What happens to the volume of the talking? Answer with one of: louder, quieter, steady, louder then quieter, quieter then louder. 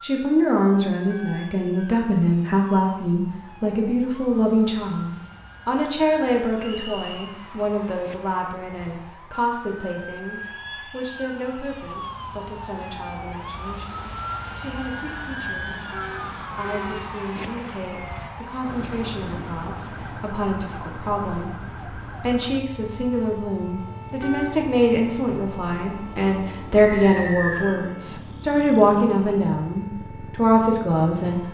quieter then louder.